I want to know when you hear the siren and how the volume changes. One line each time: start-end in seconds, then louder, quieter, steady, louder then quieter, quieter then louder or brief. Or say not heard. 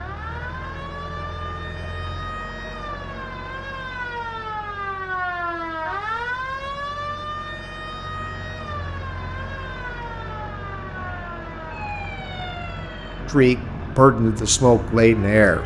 0.0-15.6 louder then quieter.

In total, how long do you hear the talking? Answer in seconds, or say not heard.
2 s.